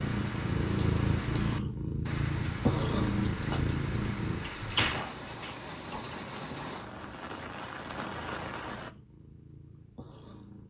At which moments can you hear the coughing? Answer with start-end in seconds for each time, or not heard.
not heard.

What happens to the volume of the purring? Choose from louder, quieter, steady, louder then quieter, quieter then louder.
quieter.